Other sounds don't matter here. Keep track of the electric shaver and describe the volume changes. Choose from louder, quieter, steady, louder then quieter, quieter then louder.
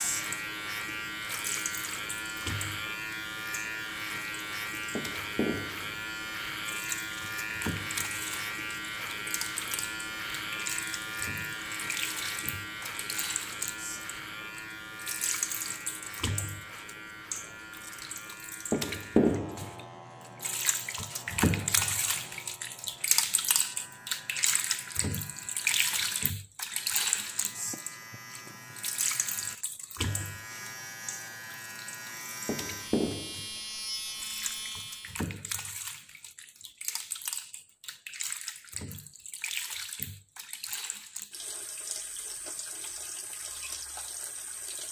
quieter then louder.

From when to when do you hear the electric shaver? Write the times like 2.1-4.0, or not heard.
0.0-35.2.